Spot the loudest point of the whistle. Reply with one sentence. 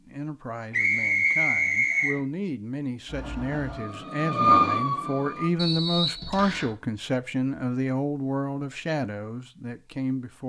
The loudest moment of the whistle is at 1 second.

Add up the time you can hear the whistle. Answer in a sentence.
The whistle can be heard for 3 seconds in total.